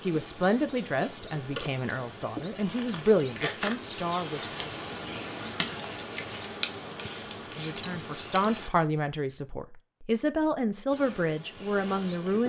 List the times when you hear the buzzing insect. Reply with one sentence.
The buzzing insect can be heard from 0.0 to 8.7 s and from 10.9 to 12.4 s.